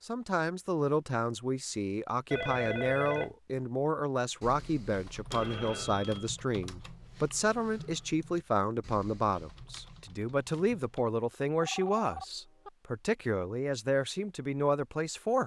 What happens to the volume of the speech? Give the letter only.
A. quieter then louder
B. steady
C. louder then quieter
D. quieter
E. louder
B.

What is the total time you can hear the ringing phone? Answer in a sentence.
You can hear the ringing phone for 3 seconds altogether.